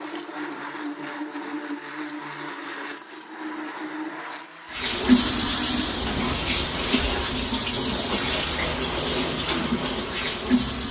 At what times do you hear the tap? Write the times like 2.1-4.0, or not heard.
4.7-10.8.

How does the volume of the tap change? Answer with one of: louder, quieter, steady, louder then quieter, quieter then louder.
quieter.